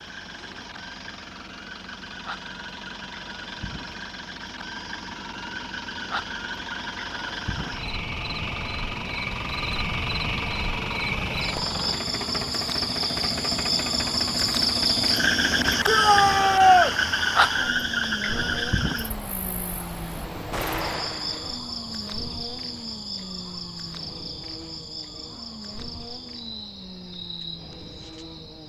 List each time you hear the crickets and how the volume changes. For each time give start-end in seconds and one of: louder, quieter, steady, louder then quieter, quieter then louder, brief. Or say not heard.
0.0-28.6 louder then quieter.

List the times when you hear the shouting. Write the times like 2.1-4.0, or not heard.
15.8-16.9.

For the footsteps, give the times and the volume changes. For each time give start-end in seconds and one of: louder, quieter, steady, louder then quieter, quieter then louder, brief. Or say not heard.
not heard.